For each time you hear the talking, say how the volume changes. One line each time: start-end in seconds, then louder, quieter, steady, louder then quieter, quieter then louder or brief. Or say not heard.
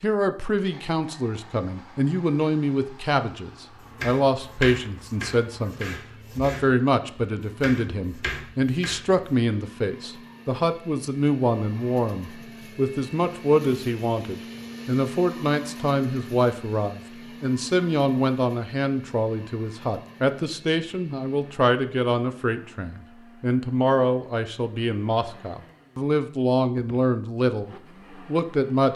0.0-28.9 steady.